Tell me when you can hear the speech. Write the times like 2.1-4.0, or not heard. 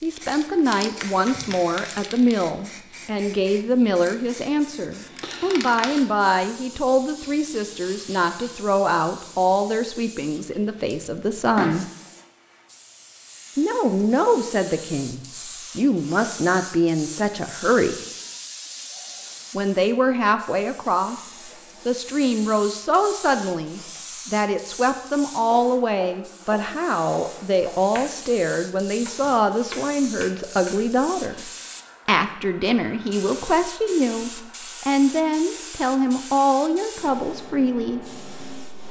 0.0-11.9, 13.6-17.9, 19.5-38.0.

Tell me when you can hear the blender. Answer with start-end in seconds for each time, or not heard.
not heard.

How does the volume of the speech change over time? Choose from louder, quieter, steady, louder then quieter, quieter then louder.
steady.